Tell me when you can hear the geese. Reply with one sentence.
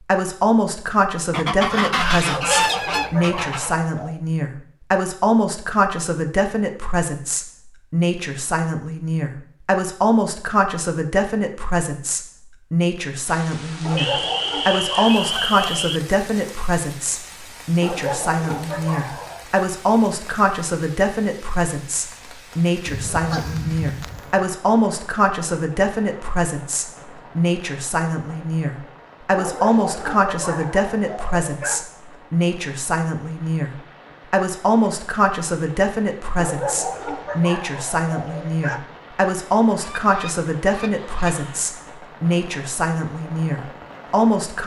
The geese can be heard from 1.3 to 3.8 s, from 13.9 to 16.0 s, from 22.9 to 24.4 s and from 39.8 to 41.7 s.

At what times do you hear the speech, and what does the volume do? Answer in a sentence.
You can hear the speech from 0.0 to 44.6 s, at a steady volume.